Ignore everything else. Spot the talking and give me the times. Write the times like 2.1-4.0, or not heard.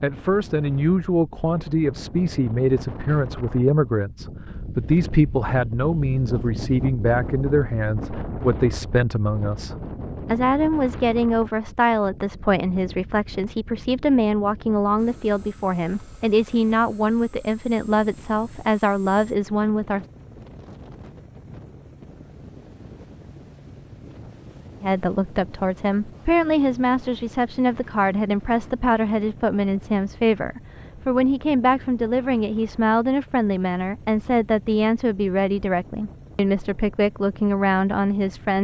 0.0-20.1, 24.8-38.5.